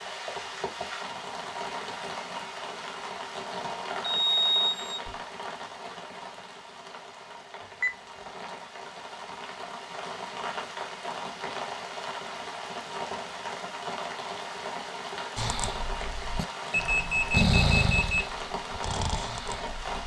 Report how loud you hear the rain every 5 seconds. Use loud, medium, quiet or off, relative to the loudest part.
loud, medium, loud, loud.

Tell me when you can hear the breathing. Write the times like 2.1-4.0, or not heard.
15.3-20.0.